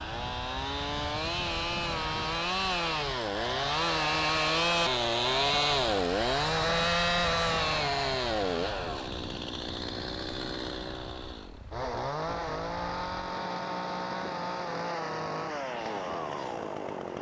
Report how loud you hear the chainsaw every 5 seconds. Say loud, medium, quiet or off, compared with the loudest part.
loud, loud, medium, medium.